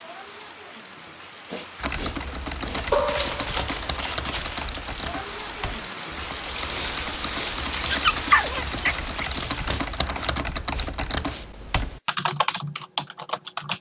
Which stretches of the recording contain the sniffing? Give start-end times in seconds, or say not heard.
0.9-2.9, 6.7-7.5, 9.6-12.2.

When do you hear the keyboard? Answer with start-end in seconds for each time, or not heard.
1.8-13.7.